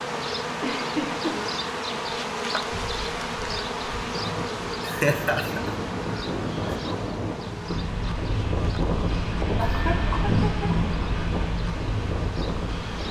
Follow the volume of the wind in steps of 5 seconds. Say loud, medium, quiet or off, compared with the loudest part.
medium, loud, loud.